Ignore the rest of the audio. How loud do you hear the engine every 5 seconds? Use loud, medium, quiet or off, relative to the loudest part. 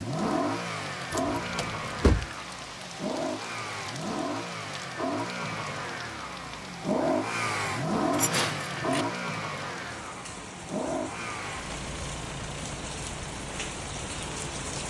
loud, loud, medium.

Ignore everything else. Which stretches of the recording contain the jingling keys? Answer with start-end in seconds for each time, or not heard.
1.1-2.3, 8.1-9.1.